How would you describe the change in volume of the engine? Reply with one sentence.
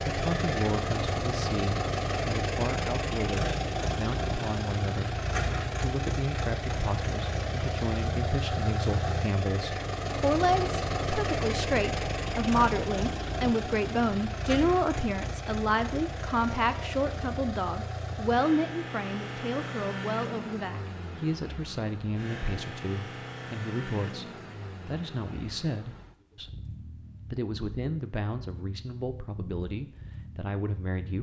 The volume of the engine goes down.